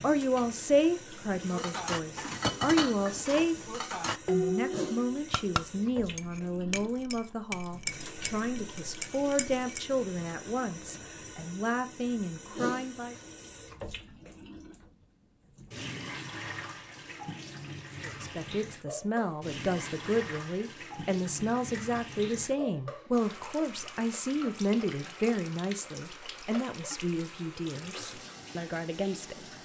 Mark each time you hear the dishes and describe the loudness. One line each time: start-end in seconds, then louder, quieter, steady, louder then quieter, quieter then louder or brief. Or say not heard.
1.4-9.8 quieter.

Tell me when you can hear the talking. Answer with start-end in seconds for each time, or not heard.
0.0-13.2, 18.0-29.4.